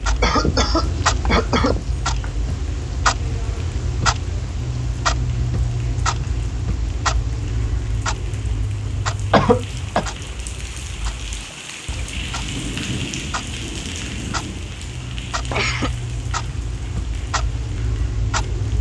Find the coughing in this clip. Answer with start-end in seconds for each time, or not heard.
0.2-2.3, 9.3-10.1, 15.0-15.9.